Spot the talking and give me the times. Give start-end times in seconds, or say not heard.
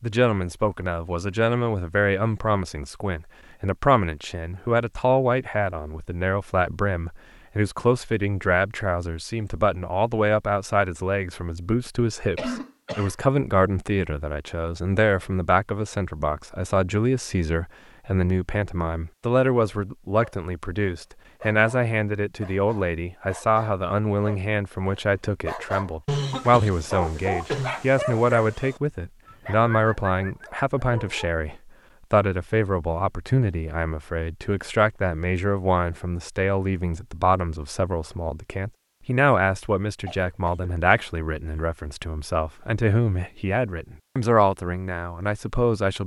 0.0-46.0.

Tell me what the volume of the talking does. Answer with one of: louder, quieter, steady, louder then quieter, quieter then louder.
steady.